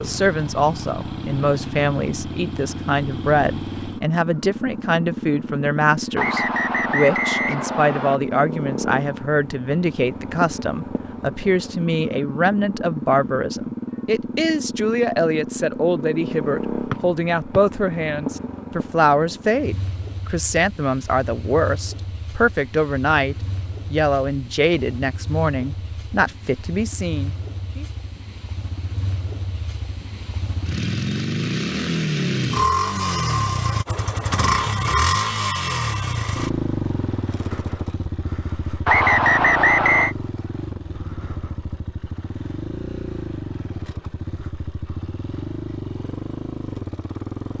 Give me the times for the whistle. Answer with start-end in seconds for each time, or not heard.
6.2-8.2, 16.9-17.6, 38.9-40.1.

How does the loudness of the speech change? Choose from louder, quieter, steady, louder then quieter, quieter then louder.
steady.